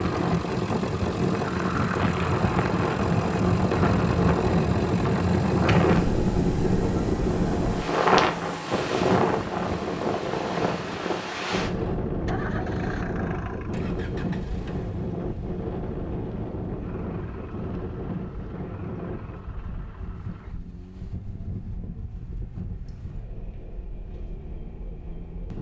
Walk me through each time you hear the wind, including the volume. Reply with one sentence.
You can hear the wind from 0.0 to 25.5 s, getting quieter.